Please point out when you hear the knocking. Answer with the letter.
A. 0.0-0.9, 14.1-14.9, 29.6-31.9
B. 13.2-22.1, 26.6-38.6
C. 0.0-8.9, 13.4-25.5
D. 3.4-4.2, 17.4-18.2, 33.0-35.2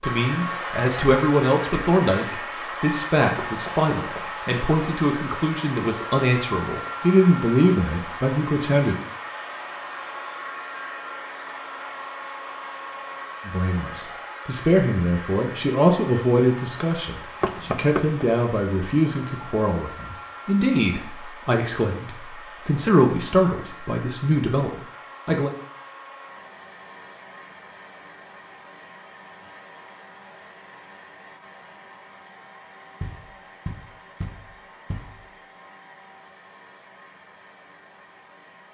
D.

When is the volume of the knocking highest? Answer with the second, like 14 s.
18 s.